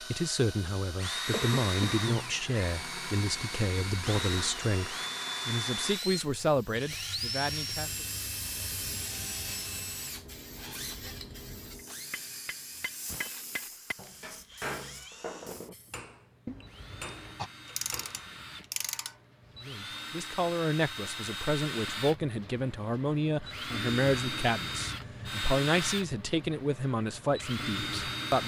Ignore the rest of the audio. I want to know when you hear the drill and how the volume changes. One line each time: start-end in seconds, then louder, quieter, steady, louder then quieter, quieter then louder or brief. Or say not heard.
0.0-28.4 quieter then louder.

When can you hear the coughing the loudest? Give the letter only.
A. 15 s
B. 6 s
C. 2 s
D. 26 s
C.